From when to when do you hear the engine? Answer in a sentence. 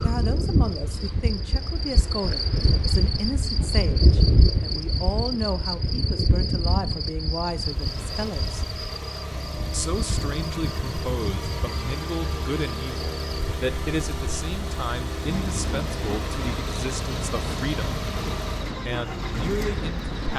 You can hear the engine from 7.5 to 20.3 s.